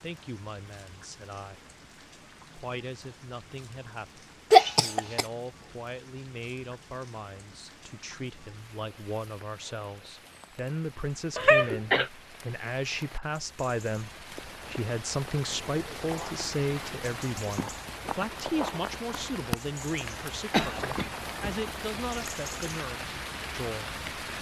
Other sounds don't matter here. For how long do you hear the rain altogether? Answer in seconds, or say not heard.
24 s.